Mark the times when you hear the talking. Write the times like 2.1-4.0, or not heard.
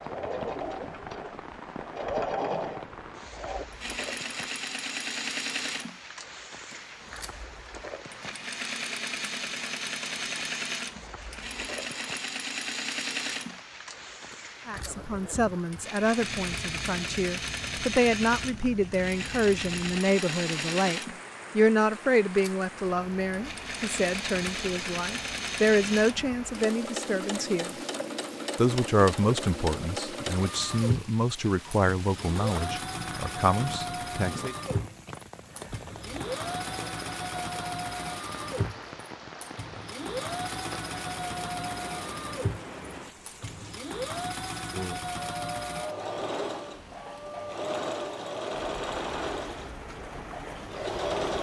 14.7-27.8, 28.6-34.5.